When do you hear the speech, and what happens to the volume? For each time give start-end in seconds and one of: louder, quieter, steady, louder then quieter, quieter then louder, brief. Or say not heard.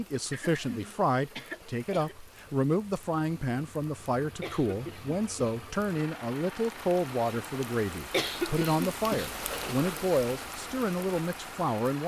0.0-12.0 steady.